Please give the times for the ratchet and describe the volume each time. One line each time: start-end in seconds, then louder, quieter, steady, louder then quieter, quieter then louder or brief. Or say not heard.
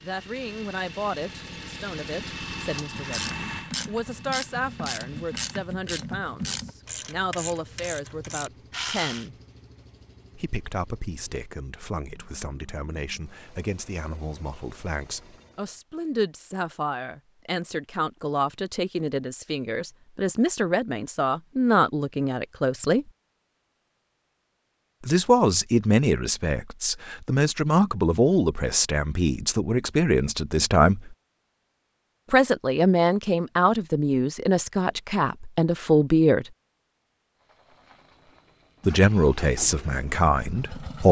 2.8-9.2 steady.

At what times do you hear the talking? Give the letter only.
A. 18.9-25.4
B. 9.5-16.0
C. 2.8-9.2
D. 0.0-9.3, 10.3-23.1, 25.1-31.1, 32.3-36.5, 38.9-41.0
D.